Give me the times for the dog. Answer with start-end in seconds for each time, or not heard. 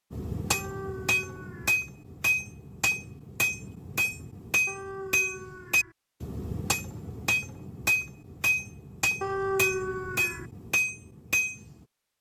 0.5-1.8, 4.7-6.0, 9.2-10.4.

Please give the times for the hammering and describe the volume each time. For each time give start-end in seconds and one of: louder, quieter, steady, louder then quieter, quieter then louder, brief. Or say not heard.
0.1-11.8 steady.